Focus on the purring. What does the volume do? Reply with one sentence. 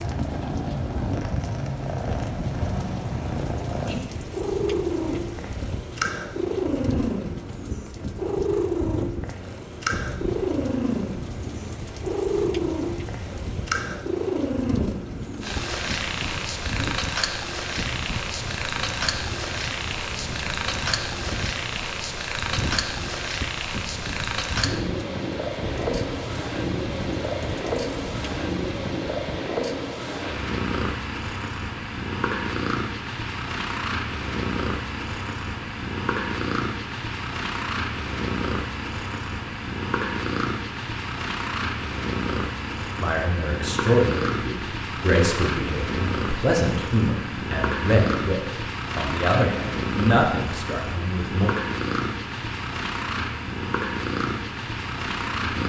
The loudness of the purring stays about the same.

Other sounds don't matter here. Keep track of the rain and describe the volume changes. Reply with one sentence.
The loudness of the rain stays about the same.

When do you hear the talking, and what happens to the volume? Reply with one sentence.
The talking can be heard from 43.0 to 51.5 s, at a steady volume.